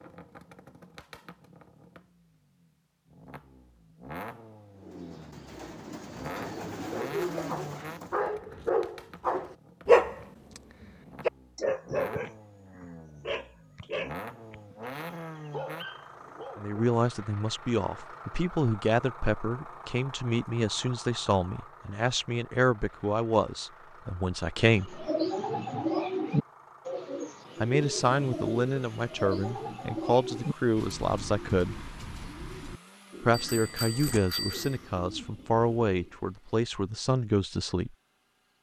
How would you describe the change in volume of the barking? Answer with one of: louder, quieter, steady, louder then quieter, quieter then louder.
louder then quieter.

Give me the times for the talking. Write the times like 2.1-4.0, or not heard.
16.6-25.1, 27.6-31.9, 33.2-37.9.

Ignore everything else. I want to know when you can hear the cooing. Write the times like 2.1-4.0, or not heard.
4.8-8.3, 24.6-36.2.